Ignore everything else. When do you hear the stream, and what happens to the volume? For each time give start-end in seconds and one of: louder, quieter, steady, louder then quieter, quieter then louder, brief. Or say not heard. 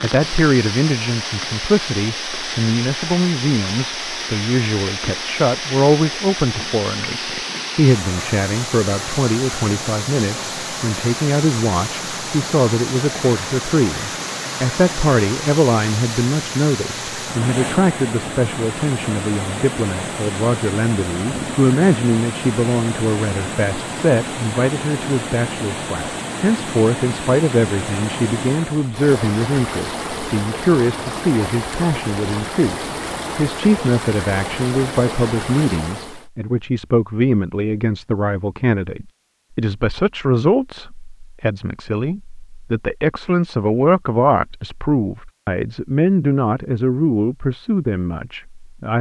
0.0-36.2 steady.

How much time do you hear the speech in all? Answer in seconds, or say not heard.
49 s.